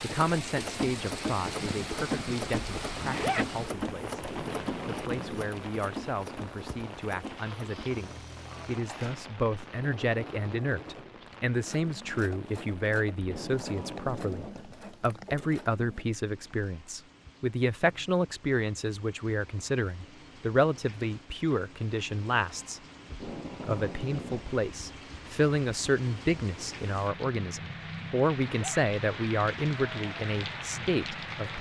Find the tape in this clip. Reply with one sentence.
You can hear the tape from 4.2 to 5.5 s, from 13.2 to 14.7 s and from 23.1 to 24.6 s.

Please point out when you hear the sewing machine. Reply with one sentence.
You can hear the sewing machine from 0.0 to 16.1 s.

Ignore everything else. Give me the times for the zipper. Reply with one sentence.
The zipper can be heard from 3.0 to 3.5 s and from 28.4 to 28.8 s.